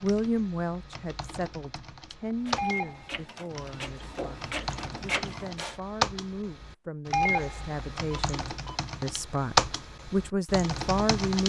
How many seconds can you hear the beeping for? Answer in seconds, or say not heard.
3 s.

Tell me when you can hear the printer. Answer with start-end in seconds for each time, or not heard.
2.4-5.8.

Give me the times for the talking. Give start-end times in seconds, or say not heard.
0.0-11.4.